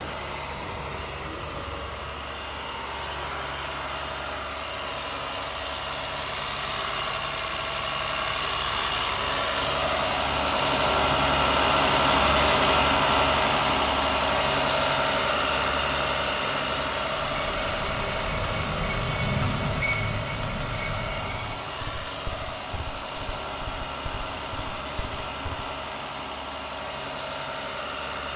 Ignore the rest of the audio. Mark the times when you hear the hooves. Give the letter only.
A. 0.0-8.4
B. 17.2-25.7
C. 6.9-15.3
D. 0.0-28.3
B.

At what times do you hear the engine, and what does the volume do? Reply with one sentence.
You can hear the engine from 0.0 to 28.3 s, getting louder then quieter.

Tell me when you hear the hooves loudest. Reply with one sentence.
The volume of the hooves peaks at 19 seconds.